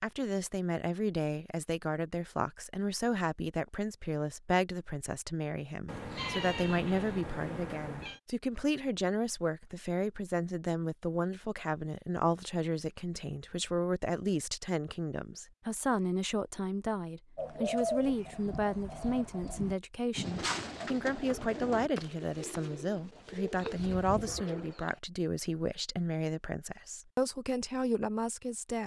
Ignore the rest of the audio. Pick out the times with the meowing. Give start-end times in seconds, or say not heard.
5.8-8.2.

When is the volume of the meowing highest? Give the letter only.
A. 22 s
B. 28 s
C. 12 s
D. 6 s
D.